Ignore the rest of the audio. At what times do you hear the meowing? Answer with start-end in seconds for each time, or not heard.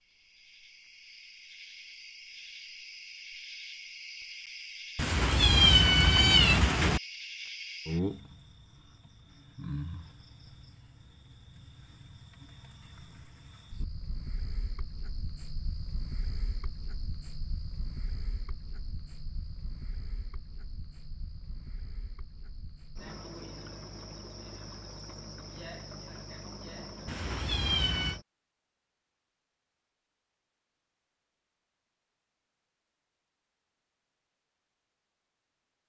5.0-7.0, 27.1-28.2.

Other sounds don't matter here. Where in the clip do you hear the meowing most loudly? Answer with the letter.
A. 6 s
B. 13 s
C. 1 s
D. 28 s
A.